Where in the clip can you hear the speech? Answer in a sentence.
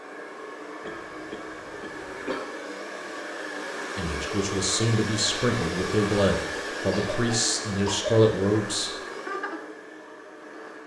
You can hear the speech from 4.0 to 9.0 s.